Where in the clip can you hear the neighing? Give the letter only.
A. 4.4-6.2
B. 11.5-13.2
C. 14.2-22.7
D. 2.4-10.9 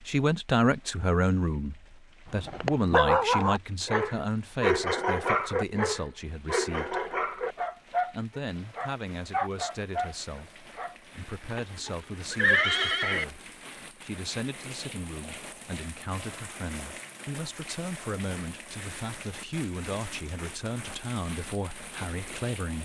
B.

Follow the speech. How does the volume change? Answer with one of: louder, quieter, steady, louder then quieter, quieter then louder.
quieter.